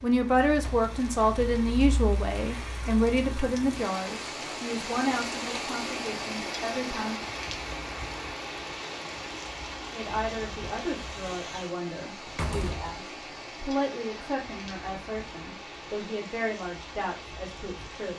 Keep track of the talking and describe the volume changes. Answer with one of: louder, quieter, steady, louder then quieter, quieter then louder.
quieter.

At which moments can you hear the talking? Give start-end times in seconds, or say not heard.
0.0-7.2, 9.9-18.1.